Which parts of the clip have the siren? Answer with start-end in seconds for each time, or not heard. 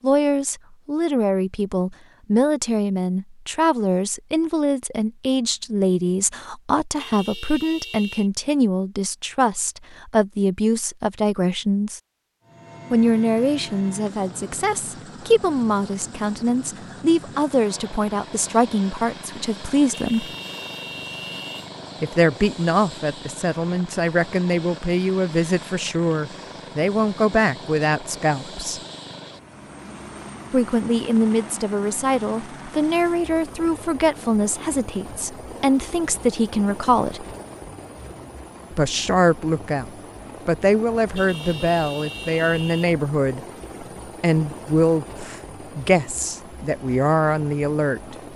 not heard.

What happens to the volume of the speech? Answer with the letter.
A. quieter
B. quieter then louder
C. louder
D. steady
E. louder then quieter
D.